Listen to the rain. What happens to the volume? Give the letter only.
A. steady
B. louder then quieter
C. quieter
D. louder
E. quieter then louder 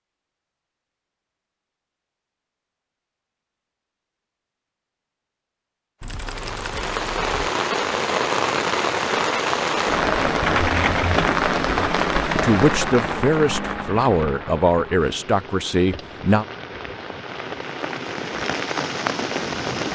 E.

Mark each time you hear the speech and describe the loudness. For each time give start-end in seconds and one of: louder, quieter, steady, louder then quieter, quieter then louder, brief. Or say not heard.
12.4-16.4 steady.